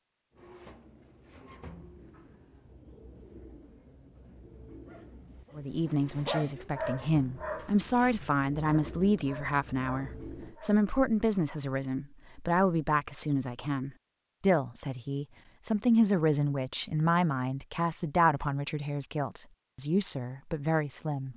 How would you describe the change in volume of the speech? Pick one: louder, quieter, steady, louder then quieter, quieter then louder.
steady.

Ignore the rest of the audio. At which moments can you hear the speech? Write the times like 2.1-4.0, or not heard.
5.5-21.3.